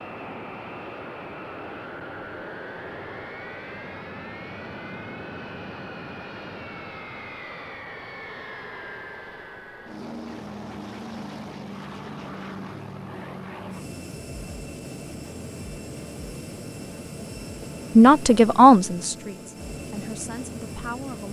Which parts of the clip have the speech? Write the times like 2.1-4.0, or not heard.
17.9-21.2.